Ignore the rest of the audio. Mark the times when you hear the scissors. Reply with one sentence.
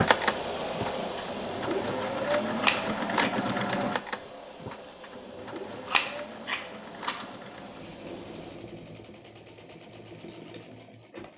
The scissors can be heard from 2.6 to 3.3 s and from 5.8 to 7.2 s.